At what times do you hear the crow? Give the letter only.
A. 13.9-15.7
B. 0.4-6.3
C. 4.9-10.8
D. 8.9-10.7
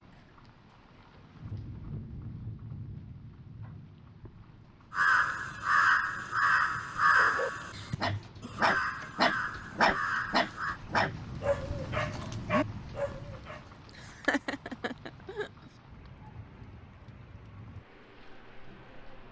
C.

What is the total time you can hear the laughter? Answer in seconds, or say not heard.
2 s.